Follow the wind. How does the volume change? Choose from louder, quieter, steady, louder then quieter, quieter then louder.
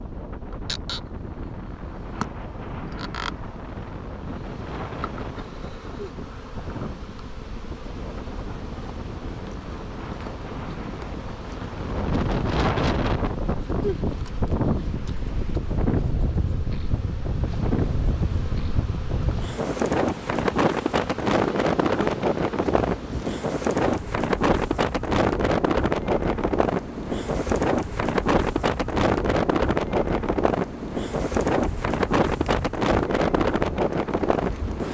louder.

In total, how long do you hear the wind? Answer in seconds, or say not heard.
35 s.